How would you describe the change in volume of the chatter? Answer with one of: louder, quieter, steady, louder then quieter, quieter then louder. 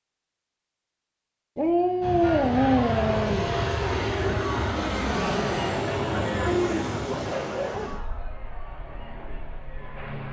quieter.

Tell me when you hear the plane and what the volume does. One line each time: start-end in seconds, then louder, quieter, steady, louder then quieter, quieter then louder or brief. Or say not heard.
2.0-10.2 quieter.